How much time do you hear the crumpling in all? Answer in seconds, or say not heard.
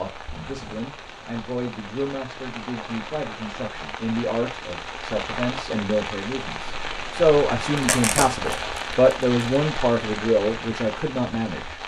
2 s.